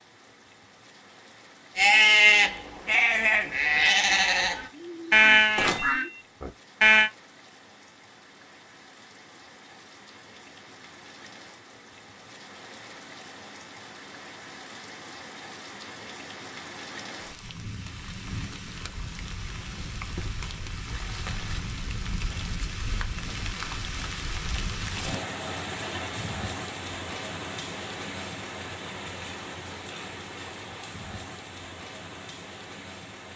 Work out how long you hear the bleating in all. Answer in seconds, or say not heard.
5 s.